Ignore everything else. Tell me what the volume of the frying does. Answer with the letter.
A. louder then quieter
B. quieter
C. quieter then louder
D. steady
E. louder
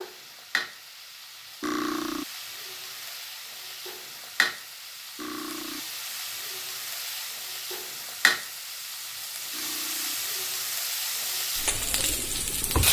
E.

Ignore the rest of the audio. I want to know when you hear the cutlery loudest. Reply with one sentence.
The loudest moment of the cutlery is at 2 seconds.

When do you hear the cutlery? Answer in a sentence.
The cutlery can be heard from 1.6 to 2.2 s, from 5.2 to 5.8 s and from 9.5 to 10.2 s.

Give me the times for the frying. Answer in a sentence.
The frying can be heard from 0.0 to 12.8 s.